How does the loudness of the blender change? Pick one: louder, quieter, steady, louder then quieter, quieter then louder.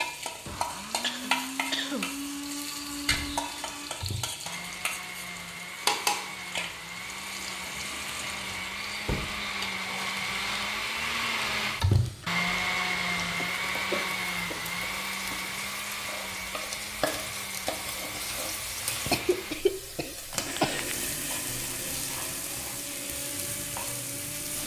louder then quieter.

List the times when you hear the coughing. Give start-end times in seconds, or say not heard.
0.9-2.1, 13.3-14.7, 19.1-20.9.